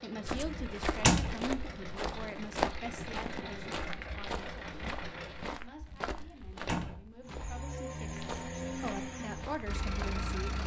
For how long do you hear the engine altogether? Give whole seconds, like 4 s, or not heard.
9 s.